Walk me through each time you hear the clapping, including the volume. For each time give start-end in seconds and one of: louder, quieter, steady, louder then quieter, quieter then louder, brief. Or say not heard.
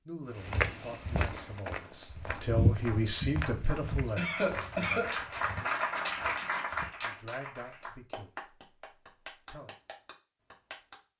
1.2-11.0 louder then quieter.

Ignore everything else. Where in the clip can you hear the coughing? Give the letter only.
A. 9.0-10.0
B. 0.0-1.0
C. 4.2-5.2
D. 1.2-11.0
C.